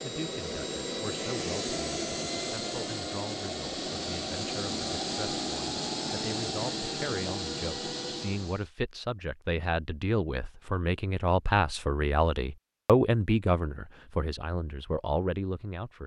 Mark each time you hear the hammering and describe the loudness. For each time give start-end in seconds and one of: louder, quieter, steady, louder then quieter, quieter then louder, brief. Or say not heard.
not heard.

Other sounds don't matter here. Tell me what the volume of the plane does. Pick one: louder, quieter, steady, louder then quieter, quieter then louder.
steady.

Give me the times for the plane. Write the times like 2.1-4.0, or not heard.
0.0-8.7.